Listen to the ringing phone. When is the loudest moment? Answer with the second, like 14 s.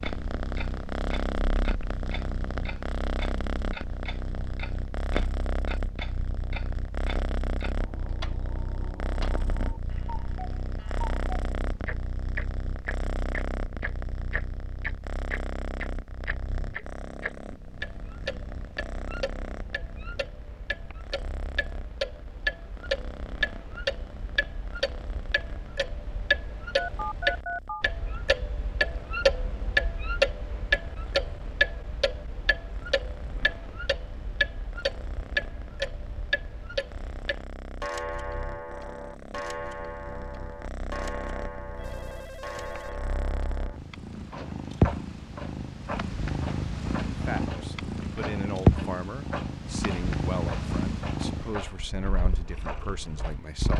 27 s.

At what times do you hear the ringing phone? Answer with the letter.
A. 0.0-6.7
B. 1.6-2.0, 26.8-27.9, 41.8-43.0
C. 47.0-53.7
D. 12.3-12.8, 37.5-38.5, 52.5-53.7
B.